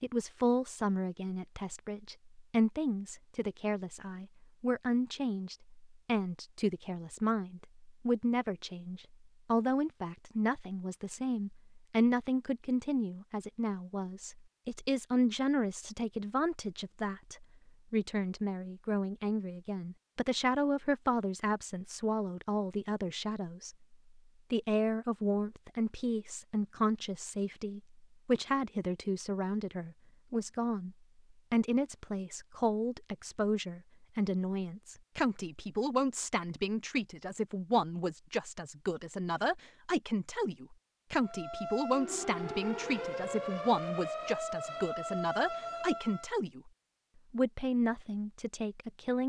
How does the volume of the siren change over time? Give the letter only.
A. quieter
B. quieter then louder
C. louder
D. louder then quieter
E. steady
E.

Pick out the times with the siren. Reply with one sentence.
The siren can be heard from 41.2 to 46.4 s.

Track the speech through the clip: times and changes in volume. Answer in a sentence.
The speech can be heard from 0.0 to 46.7 s, at a steady volume; and briefly from 47.3 to 49.2 s.